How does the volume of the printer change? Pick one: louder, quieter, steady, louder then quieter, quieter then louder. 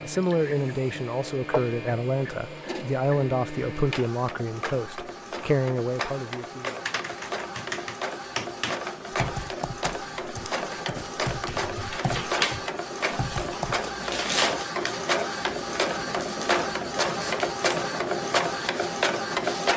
louder.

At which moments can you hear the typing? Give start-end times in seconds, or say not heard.
6.5-13.8.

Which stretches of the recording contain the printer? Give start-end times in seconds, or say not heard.
0.0-19.7.